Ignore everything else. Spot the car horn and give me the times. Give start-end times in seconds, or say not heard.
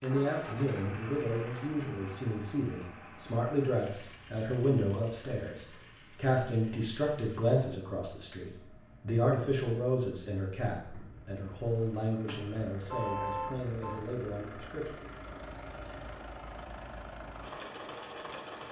12.8-14.1.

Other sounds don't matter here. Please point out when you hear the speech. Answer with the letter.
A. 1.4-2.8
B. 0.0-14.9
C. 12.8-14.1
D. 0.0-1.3
B.